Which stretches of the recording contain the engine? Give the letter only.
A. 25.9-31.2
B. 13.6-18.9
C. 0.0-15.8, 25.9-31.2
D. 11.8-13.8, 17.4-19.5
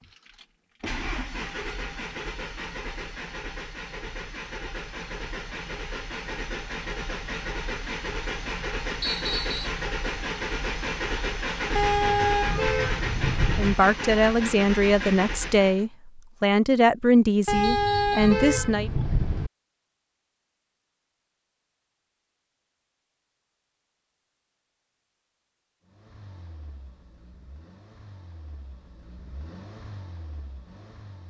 C.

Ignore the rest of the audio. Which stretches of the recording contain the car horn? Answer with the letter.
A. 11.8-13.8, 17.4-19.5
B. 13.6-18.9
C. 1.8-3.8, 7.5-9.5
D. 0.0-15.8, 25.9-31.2
A.